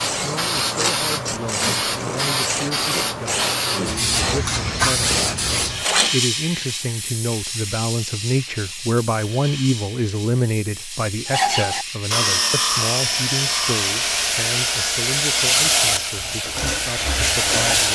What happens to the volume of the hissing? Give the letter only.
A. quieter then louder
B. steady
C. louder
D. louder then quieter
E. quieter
A.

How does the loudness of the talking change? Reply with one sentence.
The loudness of the talking goes up, then down.